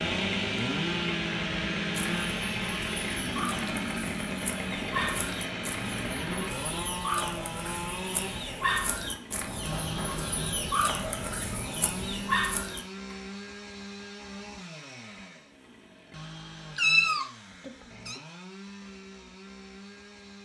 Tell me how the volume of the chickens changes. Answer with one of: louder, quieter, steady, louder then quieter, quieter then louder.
louder.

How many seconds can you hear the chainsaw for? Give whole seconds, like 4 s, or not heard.
20 s.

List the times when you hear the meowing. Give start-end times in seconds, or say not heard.
16.8-18.2.